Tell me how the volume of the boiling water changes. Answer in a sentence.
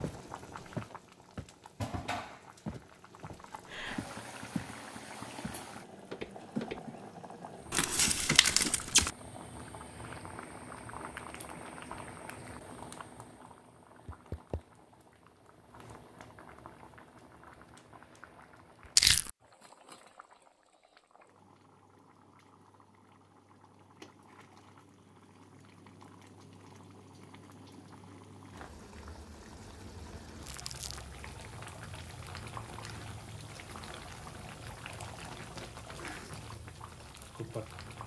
The volume of the boiling water goes down, then up.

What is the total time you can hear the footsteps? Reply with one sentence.
The footsteps can be heard for 6 seconds in total.